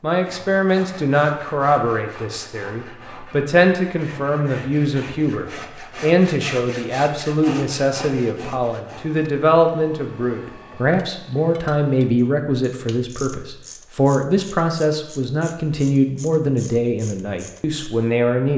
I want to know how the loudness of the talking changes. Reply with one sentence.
The loudness of the talking stays about the same.